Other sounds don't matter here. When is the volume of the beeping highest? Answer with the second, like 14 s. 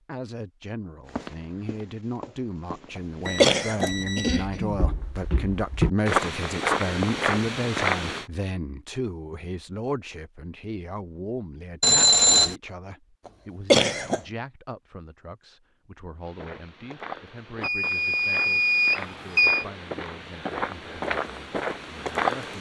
12 s.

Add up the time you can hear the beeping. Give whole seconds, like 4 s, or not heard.
4 s.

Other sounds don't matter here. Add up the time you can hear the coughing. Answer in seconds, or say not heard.
2 s.